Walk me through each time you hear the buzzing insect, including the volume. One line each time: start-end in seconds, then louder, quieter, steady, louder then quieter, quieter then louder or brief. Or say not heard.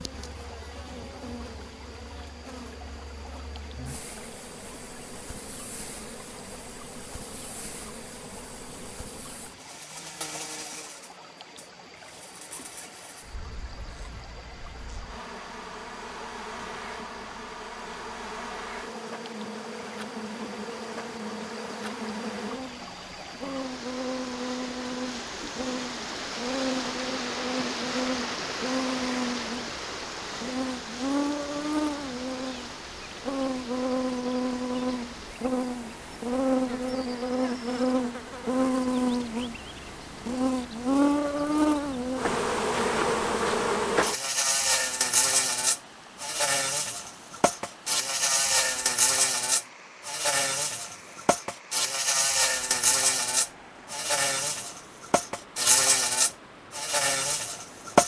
0.0-58.0 louder.